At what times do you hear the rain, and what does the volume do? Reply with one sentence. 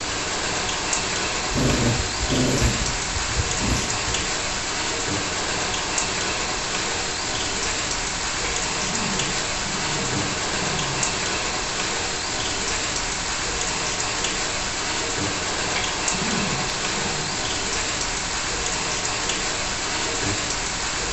You can hear the rain from 0.0 to 21.0 s, at a steady volume.